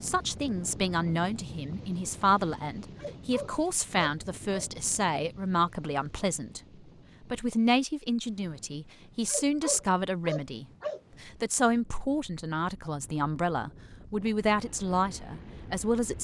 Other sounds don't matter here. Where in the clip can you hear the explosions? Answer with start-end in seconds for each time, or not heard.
not heard.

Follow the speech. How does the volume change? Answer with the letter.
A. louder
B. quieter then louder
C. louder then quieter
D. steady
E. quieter
D.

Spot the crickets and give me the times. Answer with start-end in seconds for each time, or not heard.
not heard.